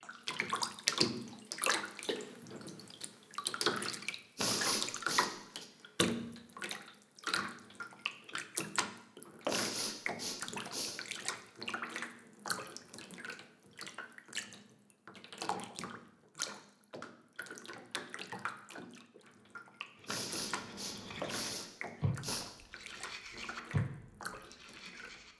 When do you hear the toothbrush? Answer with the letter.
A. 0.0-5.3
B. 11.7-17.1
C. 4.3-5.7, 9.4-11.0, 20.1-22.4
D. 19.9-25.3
D.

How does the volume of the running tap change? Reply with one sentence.
The loudness of the running tap goes down.